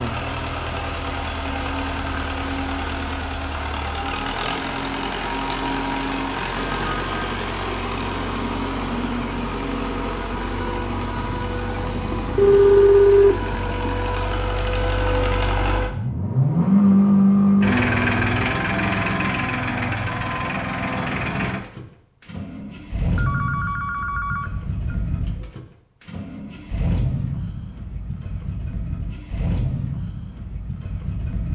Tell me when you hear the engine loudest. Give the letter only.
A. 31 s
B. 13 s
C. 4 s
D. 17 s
D.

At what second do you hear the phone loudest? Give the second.
13 s.